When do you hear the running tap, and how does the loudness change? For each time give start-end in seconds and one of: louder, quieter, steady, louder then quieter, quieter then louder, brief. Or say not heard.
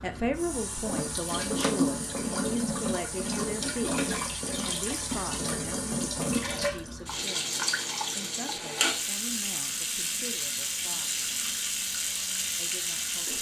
0.0-13.3 steady.